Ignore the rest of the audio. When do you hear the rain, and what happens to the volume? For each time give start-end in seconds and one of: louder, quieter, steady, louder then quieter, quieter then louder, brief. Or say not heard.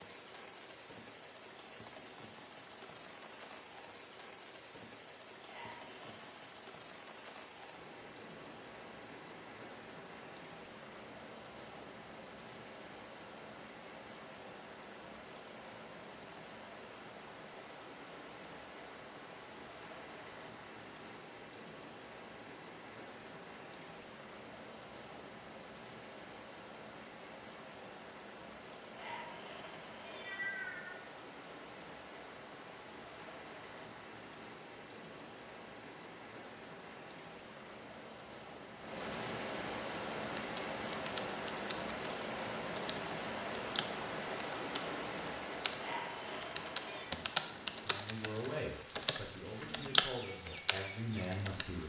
0.0-51.8 louder.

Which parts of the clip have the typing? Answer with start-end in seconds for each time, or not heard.
40.1-51.6.